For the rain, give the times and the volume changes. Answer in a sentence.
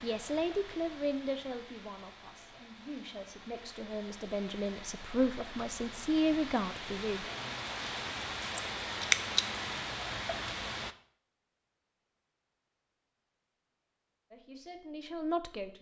You can hear the rain from 0.0 to 10.9 s, getting louder.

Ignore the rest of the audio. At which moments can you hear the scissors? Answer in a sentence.
The scissors can be heard from 8.4 to 9.4 s.